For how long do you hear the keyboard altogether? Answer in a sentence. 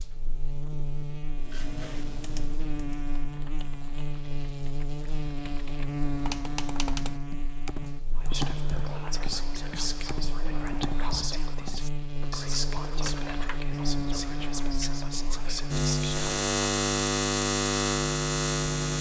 You can hear the keyboard for 12 seconds altogether.